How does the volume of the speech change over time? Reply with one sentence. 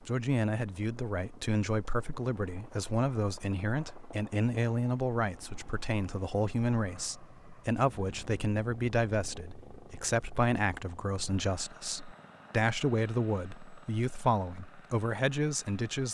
The volume of the speech stays about the same.